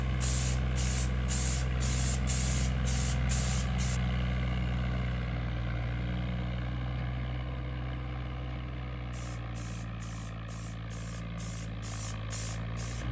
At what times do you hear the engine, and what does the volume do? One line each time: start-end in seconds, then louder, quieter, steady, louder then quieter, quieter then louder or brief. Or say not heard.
0.0-13.0 quieter.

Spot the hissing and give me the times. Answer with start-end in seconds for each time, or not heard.
0.0-4.0, 9.1-13.0.